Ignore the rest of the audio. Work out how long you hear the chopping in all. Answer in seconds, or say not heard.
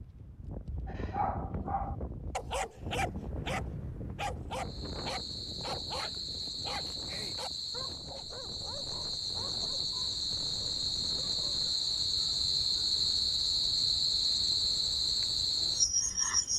not heard.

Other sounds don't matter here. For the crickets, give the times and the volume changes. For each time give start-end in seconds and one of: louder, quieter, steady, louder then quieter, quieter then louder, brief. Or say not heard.
4.5-16.5 louder.